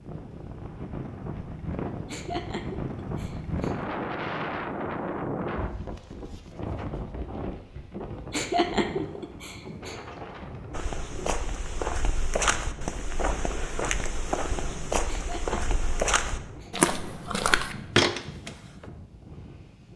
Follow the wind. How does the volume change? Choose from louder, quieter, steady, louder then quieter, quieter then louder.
quieter.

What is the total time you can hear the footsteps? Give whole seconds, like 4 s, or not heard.
8 s.